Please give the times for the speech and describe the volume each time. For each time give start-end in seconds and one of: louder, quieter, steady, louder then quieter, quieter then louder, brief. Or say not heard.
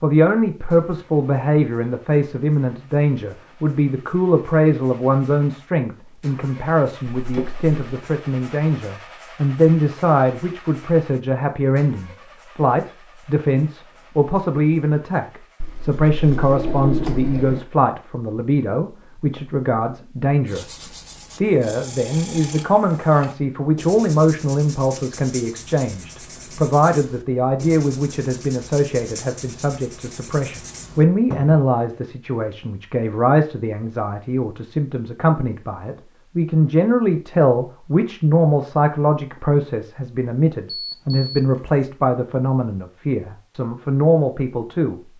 0.0-45.0 steady.